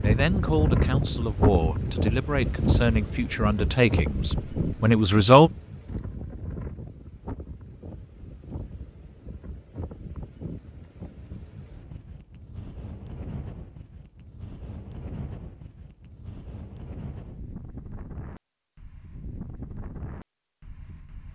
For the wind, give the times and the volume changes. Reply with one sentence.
You can hear the wind from 0.0 to 21.3 s, getting quieter.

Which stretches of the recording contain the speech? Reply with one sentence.
The speech can be heard from 0.0 to 5.5 s.